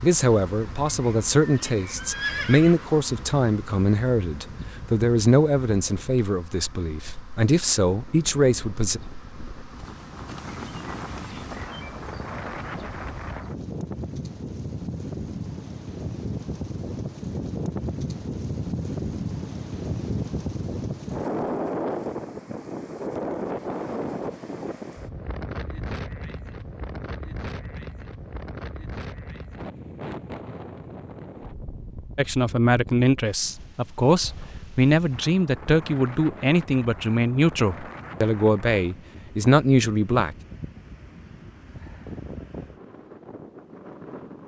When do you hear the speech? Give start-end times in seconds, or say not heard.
0.0-9.0, 32.1-40.4.